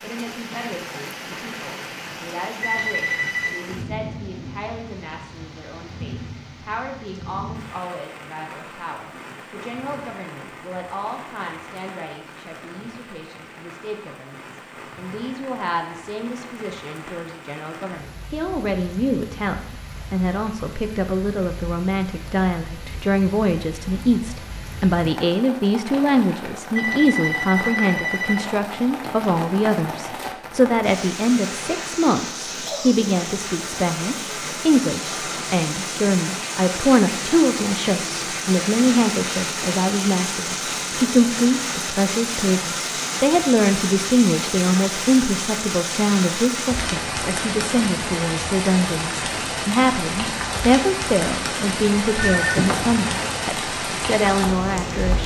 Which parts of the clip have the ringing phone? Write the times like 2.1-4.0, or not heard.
2.6-3.6, 26.8-28.5, 52.1-53.5.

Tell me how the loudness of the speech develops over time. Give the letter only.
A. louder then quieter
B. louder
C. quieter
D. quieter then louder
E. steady
B.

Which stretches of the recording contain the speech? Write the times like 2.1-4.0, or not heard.
0.0-55.2.